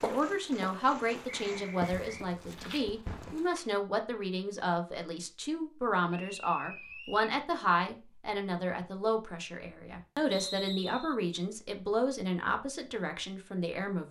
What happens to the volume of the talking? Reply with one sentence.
The volume of the talking stays about the same.